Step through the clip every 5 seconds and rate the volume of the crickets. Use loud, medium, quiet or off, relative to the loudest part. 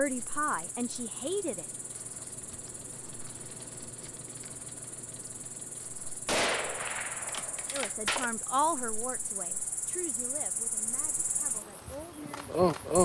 quiet, quiet, loud.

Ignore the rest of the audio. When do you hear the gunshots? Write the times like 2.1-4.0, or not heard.
6.2-8.3.